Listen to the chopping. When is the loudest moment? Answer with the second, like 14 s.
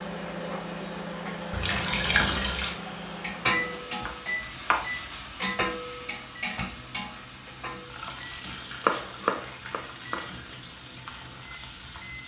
9 s.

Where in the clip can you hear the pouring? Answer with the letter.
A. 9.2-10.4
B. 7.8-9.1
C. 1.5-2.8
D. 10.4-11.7
C.